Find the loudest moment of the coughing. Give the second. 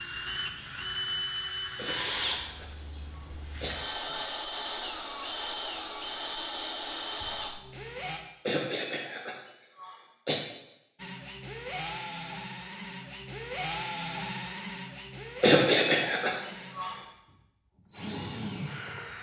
16 s.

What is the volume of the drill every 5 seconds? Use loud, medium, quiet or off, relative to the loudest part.
loud, loud, loud, medium.